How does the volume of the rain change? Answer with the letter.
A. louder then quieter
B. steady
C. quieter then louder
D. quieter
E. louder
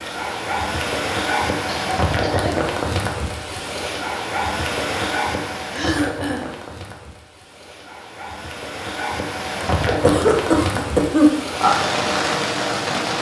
C.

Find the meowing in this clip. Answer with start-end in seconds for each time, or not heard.
not heard.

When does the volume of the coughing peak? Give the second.
11 s.